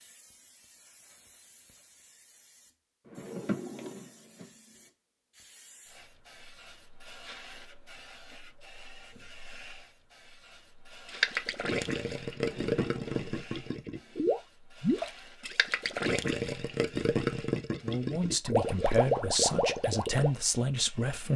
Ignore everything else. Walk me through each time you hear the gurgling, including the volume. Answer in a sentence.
The gurgling can be heard from 11.1 to 20.3 s, at a steady volume.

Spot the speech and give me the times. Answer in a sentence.
The speech can be heard from 17.8 to 21.3 s.